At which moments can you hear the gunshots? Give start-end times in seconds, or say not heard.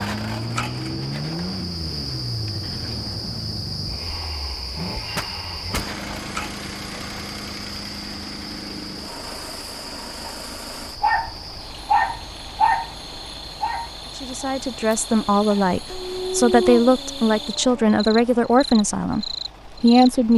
5.2-5.9.